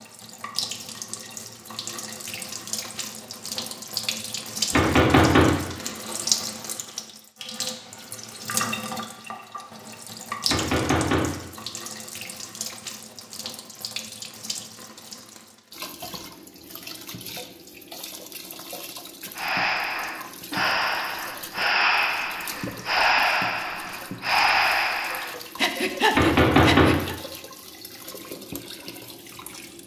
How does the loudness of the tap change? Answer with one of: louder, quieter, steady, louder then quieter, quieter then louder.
quieter.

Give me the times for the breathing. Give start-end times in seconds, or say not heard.
19.4-27.1.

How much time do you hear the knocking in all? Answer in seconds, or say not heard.
3 s.